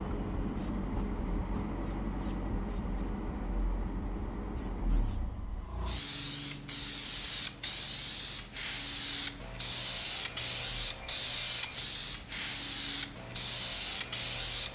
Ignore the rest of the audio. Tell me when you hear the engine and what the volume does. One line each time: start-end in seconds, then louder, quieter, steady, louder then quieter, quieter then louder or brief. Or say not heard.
0.0-14.7 quieter.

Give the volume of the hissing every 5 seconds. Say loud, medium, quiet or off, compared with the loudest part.
quiet, loud, loud.